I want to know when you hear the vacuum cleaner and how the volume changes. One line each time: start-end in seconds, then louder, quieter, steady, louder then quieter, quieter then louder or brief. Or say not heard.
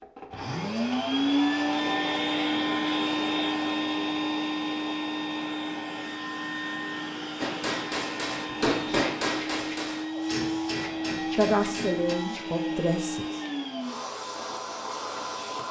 0.0-15.6 quieter.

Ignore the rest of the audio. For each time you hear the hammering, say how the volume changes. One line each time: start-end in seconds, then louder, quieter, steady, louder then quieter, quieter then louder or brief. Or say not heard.
7.4-12.2 louder then quieter.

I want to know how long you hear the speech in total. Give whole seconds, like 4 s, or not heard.
2 s.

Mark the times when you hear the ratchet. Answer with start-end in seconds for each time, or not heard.
not heard.